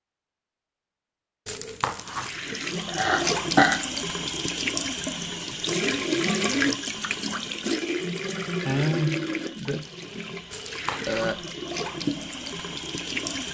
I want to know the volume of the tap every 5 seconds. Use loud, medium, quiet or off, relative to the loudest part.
loud, loud, medium.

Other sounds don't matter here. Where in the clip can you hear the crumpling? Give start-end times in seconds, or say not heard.
1.4-2.4, 10.5-11.3.